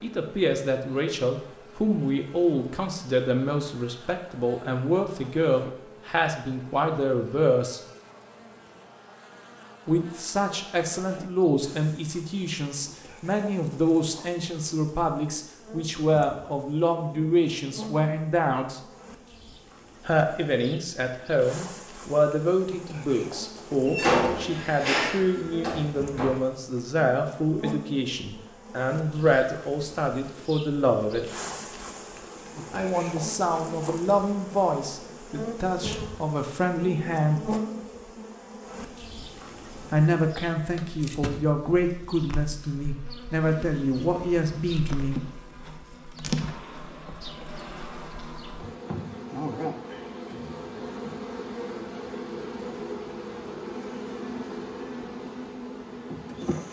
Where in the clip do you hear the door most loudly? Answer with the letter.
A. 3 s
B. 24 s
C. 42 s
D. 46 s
B.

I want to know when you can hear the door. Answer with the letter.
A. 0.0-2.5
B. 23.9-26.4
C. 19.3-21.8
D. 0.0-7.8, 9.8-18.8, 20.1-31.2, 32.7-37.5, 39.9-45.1
B.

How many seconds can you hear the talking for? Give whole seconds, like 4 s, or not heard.
38 s.